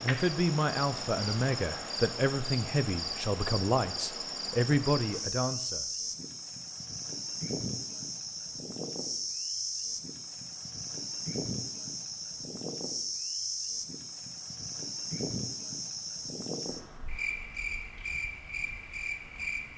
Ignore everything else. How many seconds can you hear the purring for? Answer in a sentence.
You can't hear the purring here.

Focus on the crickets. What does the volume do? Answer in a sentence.
The loudness of the crickets stays about the same.